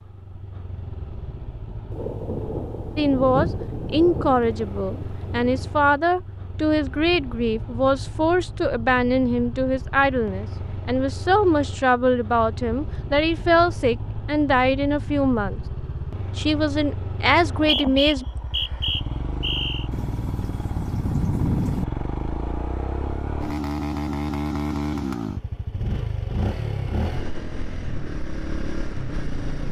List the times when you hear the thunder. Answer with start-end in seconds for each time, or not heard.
1.9-5.8, 19.9-21.9.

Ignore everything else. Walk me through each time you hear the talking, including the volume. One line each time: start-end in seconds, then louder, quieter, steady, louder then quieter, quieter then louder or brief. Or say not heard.
3.0-15.6 steady
16.4-18.2 brief.